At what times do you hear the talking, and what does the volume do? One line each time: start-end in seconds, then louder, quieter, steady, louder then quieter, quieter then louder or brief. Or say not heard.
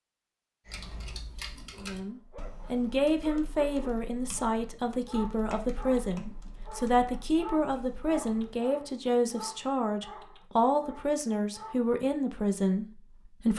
1.8-13.5 steady.